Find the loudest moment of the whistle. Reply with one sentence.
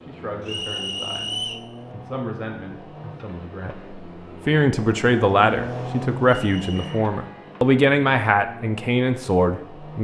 The volume of the whistle peaks at 1 second.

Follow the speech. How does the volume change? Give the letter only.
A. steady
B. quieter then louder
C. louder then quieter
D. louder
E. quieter
D.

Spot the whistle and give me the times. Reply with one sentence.
You can hear the whistle from 0.5 to 1.7 s and from 6.3 to 7.0 s.